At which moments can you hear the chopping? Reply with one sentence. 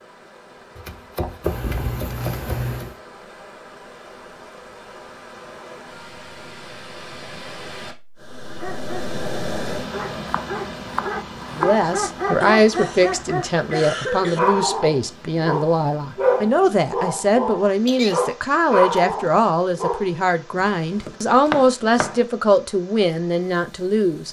The chopping can be heard from 0.8 to 2.8 s, from 10.2 to 11.8 s and from 20.6 to 22.2 s.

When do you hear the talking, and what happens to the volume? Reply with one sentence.
You can hear the talking from 11.6 to 24.2 s, at a steady volume.